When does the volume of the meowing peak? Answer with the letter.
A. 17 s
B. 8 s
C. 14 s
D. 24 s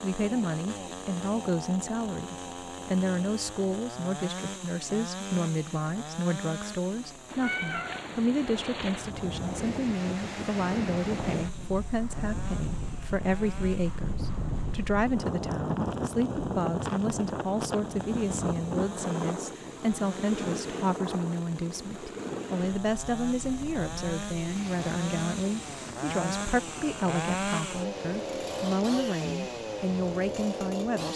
B.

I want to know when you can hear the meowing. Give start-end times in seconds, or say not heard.
7.2-9.2.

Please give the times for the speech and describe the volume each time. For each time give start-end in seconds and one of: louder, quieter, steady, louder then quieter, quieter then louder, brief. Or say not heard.
0.0-31.1 steady.